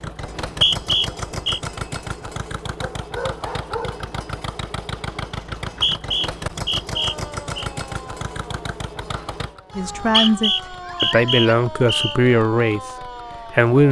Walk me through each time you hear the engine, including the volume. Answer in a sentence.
You can hear the engine from 0.0 to 13.7 s, getting quieter.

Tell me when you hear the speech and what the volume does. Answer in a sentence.
You can hear the speech from 9.8 to 13.8 s, getting quieter.